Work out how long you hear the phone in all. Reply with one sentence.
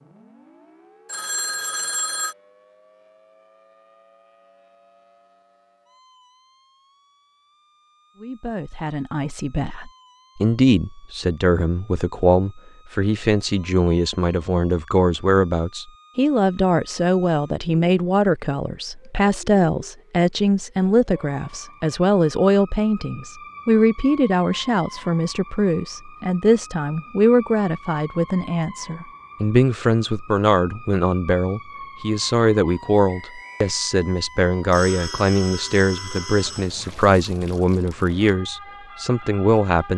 You can hear the phone for 3 seconds altogether.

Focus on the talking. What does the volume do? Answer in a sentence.
The loudness of the talking stays about the same.